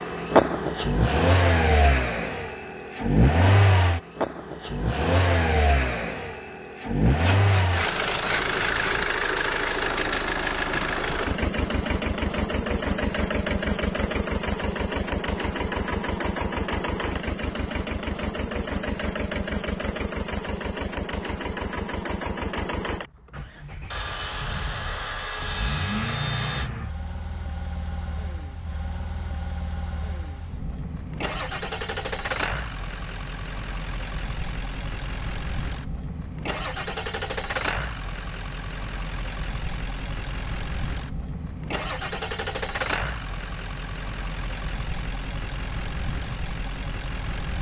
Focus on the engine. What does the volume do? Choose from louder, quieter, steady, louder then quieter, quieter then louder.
quieter.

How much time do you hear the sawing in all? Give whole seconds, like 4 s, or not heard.
5 s.